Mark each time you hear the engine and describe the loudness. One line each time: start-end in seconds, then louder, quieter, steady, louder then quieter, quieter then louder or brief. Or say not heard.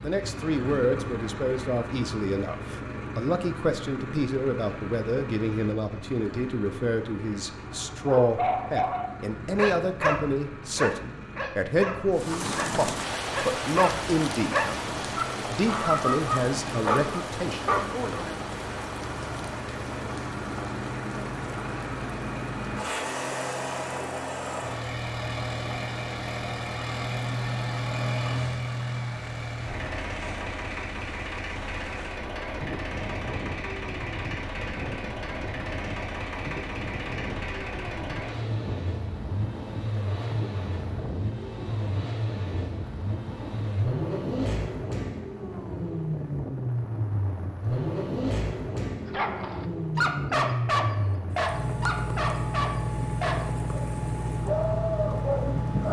0.0-55.8 louder.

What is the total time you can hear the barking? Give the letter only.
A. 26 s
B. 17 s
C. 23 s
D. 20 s
B.